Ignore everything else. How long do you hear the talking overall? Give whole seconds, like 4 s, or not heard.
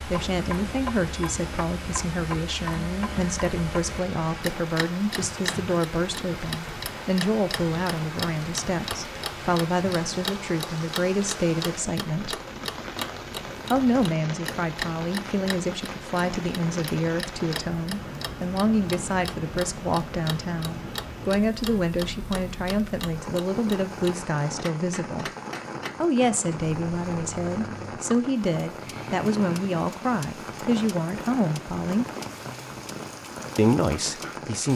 31 s.